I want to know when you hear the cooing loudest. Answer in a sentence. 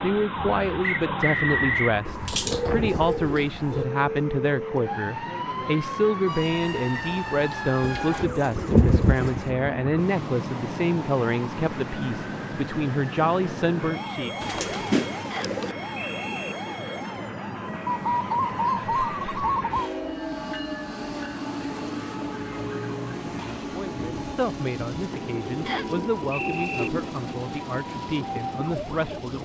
The loudest moment of the cooing is at 9 seconds.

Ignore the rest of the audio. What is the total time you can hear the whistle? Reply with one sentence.
The whistle can be heard for 4 seconds in total.